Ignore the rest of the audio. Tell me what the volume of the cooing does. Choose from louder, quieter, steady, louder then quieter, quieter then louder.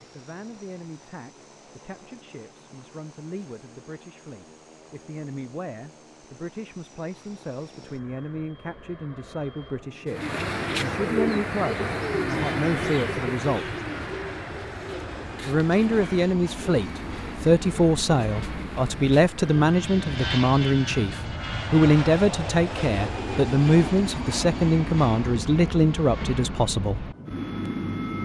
quieter.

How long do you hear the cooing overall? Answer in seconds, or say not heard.
10 s.